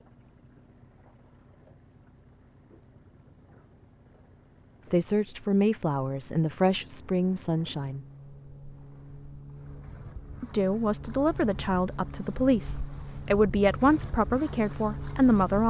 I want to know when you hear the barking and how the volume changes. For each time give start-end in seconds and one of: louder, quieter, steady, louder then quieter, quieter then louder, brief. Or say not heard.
not heard.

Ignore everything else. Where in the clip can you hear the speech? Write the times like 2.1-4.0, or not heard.
4.8-8.1, 10.4-15.6.